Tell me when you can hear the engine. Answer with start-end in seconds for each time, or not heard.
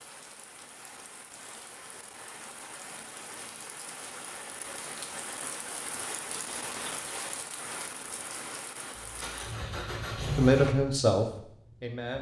8.9-10.8.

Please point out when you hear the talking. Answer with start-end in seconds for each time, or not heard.
10.1-12.1.